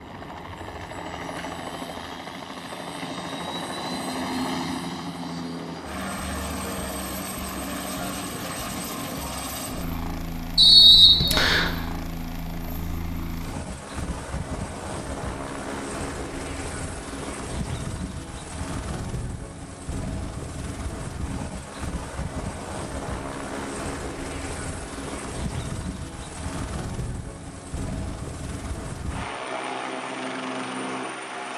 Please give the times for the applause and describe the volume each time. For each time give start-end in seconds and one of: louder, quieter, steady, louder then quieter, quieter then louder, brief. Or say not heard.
not heard.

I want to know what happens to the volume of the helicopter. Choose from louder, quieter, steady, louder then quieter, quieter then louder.
steady.